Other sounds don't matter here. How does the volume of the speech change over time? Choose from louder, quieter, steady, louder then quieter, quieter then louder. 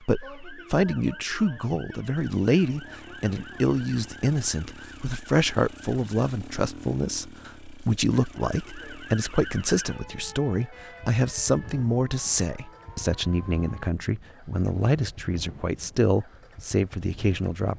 steady.